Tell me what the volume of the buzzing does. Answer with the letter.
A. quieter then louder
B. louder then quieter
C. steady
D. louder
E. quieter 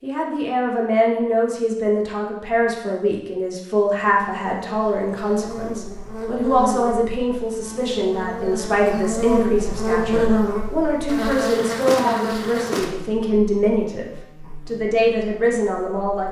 B.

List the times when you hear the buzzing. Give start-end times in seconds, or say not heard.
4.0-16.2.